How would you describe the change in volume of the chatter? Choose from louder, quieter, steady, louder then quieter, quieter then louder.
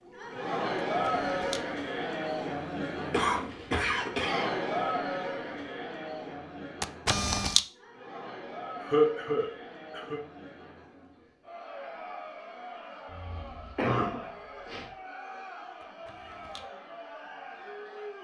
quieter.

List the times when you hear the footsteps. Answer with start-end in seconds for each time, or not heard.
not heard.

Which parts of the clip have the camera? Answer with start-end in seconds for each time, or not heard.
1.0-1.6, 6.8-7.6, 15.8-16.6.